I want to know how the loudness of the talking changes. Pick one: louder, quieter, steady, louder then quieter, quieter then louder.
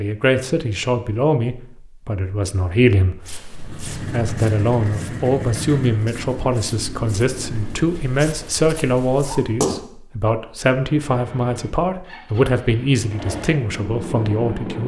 steady.